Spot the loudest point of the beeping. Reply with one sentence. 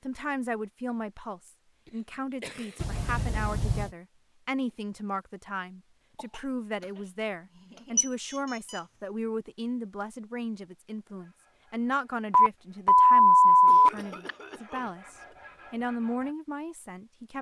The volume of the beeping peaks at 13 seconds.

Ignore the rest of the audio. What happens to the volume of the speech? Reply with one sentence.
The loudness of the speech stays about the same.